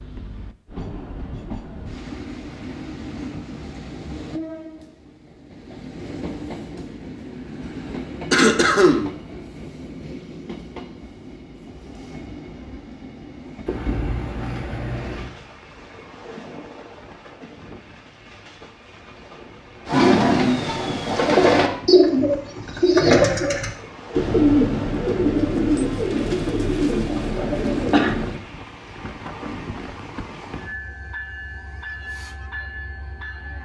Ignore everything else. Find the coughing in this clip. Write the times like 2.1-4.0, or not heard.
8.3-9.1, 13.7-15.3, 27.1-28.1.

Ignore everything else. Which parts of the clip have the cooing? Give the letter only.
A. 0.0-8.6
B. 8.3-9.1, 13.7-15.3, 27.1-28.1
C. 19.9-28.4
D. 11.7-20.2
C.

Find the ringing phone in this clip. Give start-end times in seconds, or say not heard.
not heard.